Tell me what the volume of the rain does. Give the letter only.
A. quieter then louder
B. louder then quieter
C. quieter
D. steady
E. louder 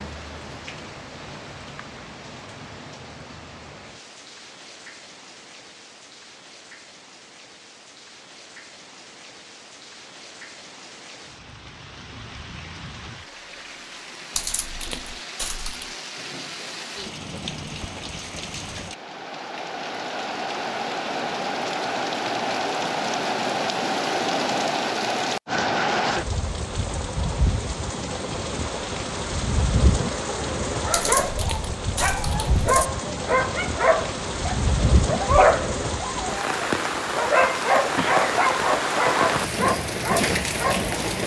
E.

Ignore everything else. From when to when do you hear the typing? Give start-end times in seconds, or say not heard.
14.3-15.9, 30.9-32.9.